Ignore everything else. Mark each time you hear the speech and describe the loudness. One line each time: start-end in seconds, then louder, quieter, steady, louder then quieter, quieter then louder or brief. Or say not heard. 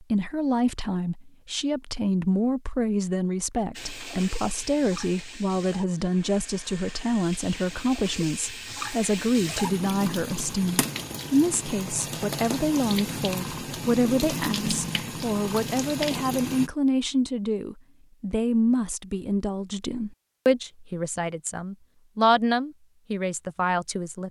0.0-24.2 steady.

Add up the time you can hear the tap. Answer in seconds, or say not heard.
13 s.